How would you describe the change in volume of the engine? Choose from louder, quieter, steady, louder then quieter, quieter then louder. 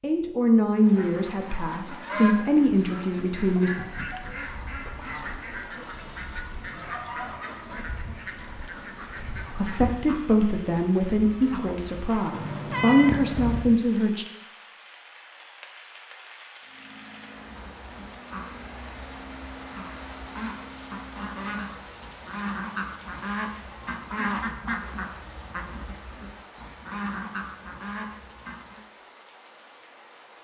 steady.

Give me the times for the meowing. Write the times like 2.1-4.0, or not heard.
12.3-13.8.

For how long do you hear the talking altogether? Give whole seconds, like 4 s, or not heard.
9 s.